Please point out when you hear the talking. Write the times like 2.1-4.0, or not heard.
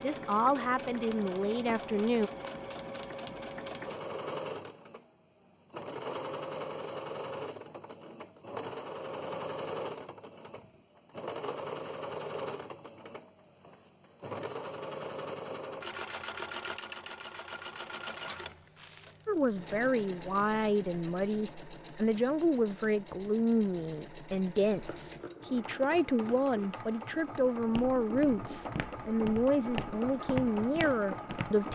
0.0-2.3, 19.2-31.7.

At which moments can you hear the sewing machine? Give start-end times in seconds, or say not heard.
0.0-31.7.